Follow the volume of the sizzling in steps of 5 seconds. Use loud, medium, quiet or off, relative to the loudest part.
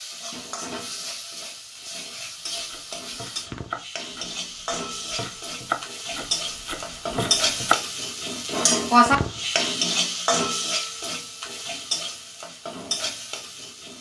medium, loud, medium.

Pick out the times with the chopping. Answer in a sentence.
You can hear the chopping from 2.5 to 7.8 s.